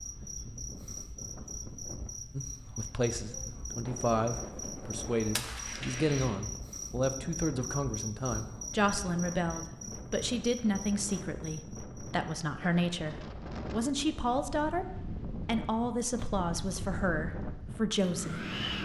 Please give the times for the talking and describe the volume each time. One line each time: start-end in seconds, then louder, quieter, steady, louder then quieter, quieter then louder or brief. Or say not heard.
2.4-18.5 steady.